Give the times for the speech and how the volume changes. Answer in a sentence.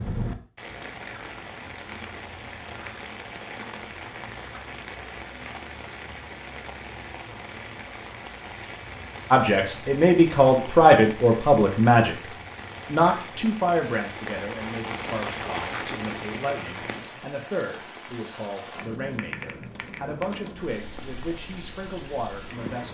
You can hear the speech briefly from 9.3 to 12.2 s; and from 12.8 to 22.8 s, getting quieter.